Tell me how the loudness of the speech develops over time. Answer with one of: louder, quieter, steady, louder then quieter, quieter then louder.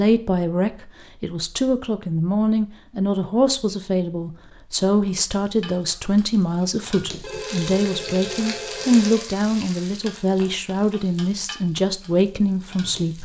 steady.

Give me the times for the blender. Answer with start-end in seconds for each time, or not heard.
not heard.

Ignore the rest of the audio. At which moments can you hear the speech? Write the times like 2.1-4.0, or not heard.
0.0-13.2.